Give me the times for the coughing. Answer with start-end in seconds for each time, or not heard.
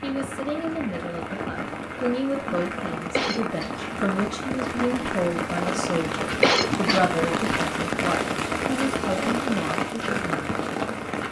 3.1-3.7, 6.4-7.0.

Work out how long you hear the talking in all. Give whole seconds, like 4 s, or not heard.
11 s.